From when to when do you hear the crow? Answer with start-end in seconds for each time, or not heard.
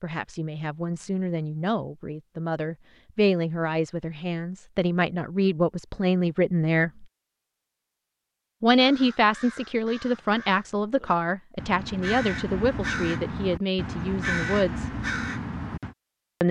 8.8-15.9.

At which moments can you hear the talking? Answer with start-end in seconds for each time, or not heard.
0.0-7.0, 8.6-14.9.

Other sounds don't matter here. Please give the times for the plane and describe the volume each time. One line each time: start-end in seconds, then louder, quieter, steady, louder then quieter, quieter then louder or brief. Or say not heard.
not heard.